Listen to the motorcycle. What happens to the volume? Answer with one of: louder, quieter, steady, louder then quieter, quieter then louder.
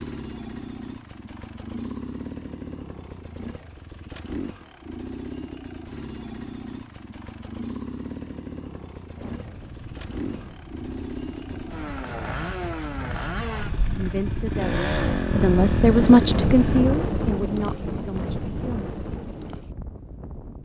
louder.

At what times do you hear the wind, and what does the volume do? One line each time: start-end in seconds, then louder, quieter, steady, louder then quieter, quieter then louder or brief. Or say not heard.
9.2-20.6 louder then quieter.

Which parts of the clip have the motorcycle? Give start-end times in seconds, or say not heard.
0.0-16.8.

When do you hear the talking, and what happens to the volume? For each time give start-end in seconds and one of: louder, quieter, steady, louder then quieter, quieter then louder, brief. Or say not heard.
13.9-18.9 louder then quieter.